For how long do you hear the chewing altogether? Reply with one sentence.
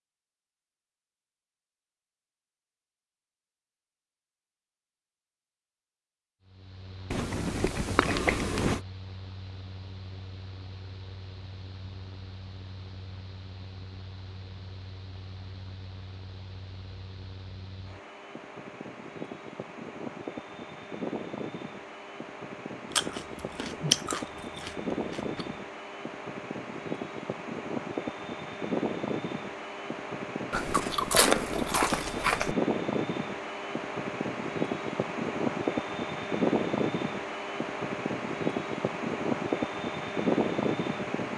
The chewing can be heard for 6 seconds in total.